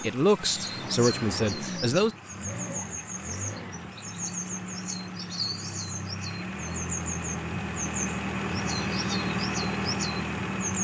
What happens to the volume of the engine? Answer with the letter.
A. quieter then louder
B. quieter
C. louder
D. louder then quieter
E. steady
C.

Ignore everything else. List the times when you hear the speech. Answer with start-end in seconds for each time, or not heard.
0.0-2.1.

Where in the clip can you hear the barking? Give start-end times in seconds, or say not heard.
not heard.